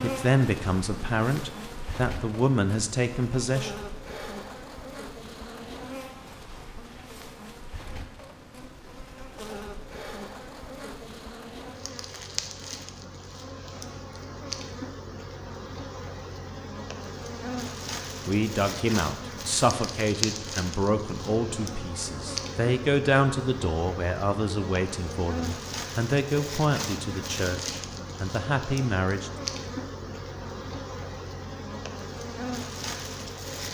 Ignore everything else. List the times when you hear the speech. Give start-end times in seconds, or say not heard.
0.0-3.8, 18.2-29.3.